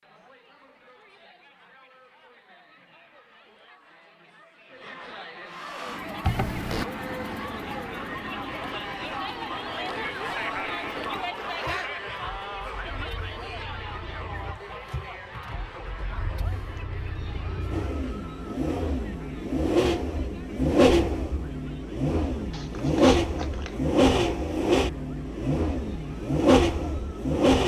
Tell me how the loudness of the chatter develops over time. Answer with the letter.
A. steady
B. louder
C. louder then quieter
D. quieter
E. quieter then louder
C.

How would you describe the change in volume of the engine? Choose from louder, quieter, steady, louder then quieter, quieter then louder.
quieter then louder.